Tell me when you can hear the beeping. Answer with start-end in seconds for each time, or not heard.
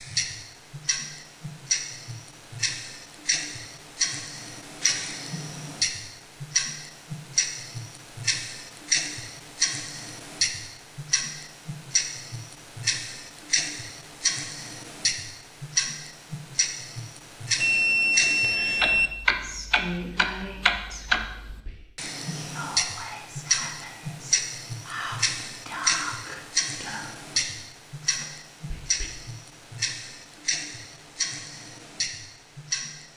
17.6-19.1.